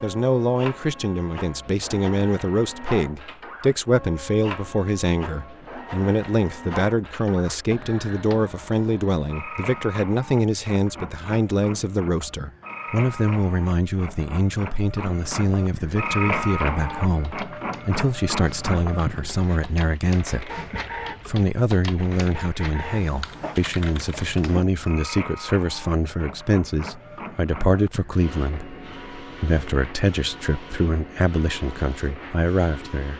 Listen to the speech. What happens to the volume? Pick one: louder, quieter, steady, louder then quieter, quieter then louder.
steady.